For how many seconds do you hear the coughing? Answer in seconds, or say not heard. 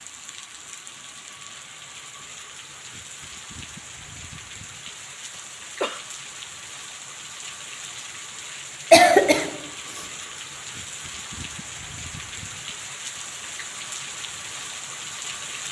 2 s.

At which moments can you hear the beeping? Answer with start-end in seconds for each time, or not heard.
not heard.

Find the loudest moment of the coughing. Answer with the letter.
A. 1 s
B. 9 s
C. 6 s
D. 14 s
B.